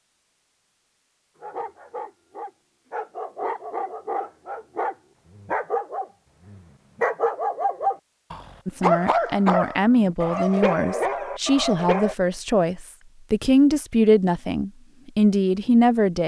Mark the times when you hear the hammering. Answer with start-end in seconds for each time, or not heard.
not heard.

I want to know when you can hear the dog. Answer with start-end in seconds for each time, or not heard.
1.4-12.2.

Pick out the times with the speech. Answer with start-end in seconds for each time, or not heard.
8.7-16.2.